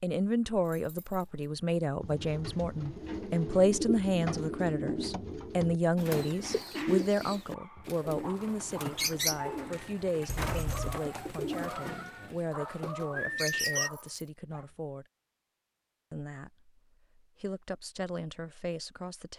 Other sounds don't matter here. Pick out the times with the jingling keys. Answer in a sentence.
The jingling keys can be heard from 0.7 to 1.4 s, from 10.2 to 11.0 s and from 13.8 to 14.3 s.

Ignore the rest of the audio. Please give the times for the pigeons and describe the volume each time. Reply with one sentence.
You can hear the pigeons from 2.0 to 13.9 s, at a steady volume.